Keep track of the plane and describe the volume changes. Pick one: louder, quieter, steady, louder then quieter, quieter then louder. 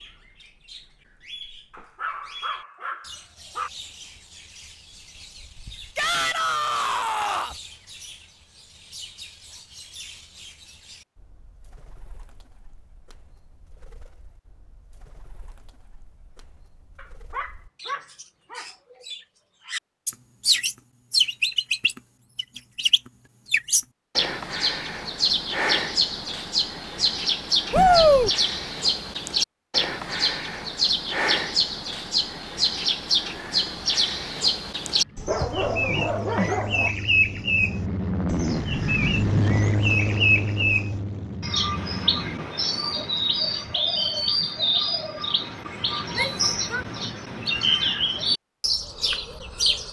louder then quieter.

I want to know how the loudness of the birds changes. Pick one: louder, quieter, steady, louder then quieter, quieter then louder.
louder.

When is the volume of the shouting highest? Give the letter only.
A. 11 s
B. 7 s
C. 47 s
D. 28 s
D.